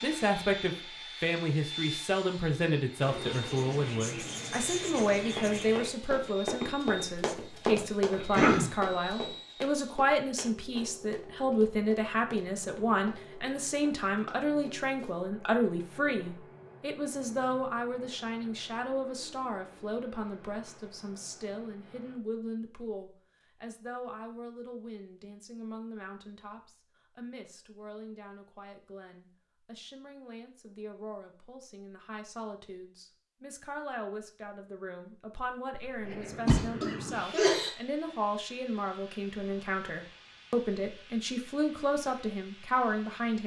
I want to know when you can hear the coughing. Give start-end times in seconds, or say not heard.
8.2-8.7, 36.0-37.7.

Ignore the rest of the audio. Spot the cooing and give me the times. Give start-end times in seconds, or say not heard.
3.0-6.0.